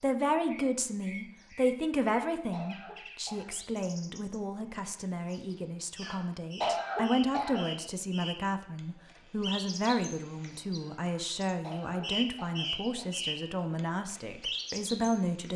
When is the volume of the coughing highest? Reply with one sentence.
The loudest moment of the coughing is at 7 seconds.